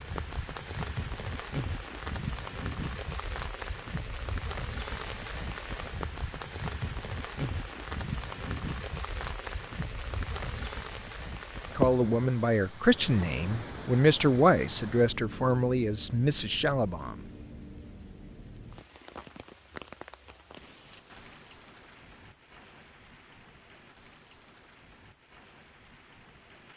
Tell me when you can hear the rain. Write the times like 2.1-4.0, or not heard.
0.0-26.7.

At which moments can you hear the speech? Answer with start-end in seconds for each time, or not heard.
11.8-17.3.